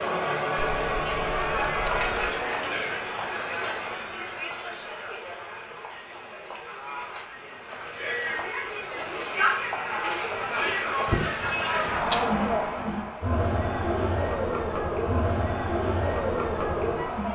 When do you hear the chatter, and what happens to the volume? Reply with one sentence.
The chatter can be heard from 0.0 to 17.2 s, getting quieter then louder.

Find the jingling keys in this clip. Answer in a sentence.
The jingling keys can be heard from 0.6 to 2.2 s and from 11.1 to 12.3 s.